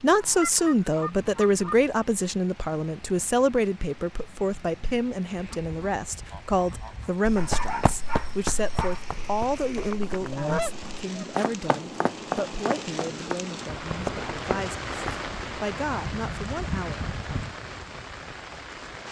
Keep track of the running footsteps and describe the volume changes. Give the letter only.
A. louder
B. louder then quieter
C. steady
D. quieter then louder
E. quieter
D.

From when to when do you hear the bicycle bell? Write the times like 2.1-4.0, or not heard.
not heard.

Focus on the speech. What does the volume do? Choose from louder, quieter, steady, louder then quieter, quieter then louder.
quieter.